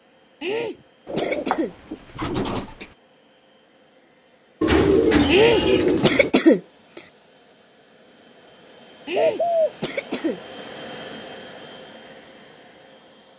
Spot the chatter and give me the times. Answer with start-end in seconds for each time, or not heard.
not heard.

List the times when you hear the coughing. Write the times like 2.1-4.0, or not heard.
0.4-1.8, 5.2-7.0, 9.1-10.4.